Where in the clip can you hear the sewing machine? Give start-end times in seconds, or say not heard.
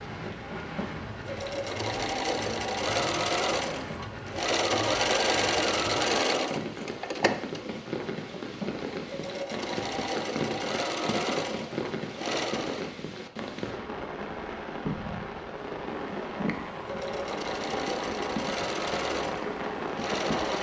0.1-12.9, 15.9-20.5.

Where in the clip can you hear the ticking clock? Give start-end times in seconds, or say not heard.
not heard.